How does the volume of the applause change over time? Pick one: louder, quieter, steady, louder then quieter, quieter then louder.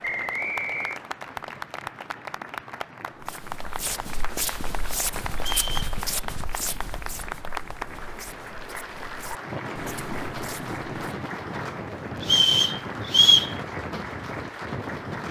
steady.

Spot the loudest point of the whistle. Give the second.
13 s.